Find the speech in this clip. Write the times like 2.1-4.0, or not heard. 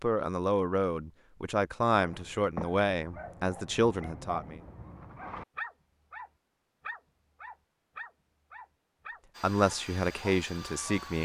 0.0-4.6, 9.4-11.2.